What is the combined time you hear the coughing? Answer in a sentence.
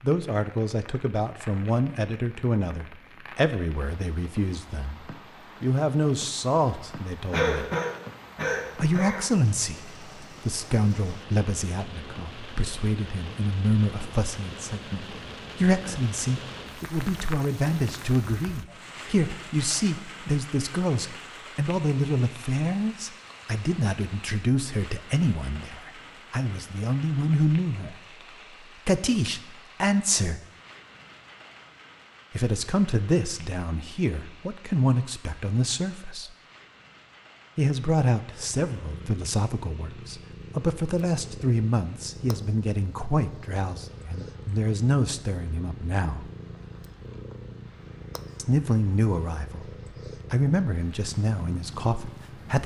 The coughing can be heard for 2 seconds in total.